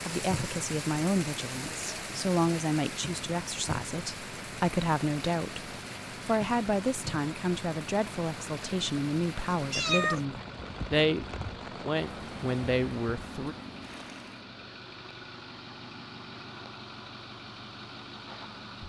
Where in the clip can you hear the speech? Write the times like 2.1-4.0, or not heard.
0.0-13.6.